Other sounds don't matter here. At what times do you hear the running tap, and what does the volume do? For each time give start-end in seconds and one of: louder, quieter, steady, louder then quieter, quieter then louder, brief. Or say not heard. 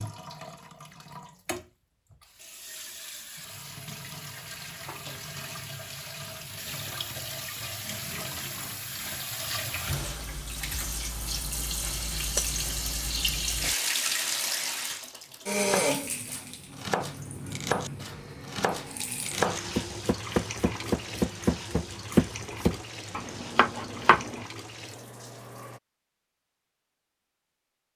0.0-25.8 louder then quieter.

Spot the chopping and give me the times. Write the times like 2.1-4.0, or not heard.
15.7-24.4.